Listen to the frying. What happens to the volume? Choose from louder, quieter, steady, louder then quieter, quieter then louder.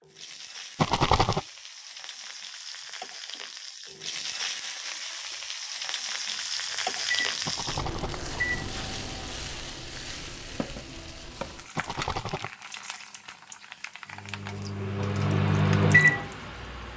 louder then quieter.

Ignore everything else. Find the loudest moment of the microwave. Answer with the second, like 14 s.
16 s.